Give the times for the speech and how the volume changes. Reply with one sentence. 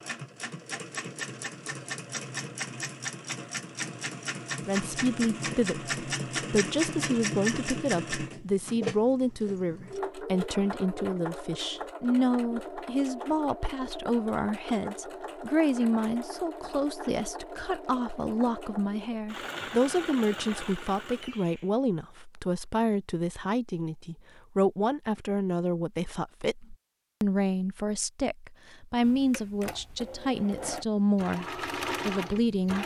The speech can be heard from 4.7 to 32.8 s, at a steady volume.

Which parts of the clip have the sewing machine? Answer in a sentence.
The sewing machine can be heard from 0.0 to 21.7 s and from 29.0 to 32.8 s.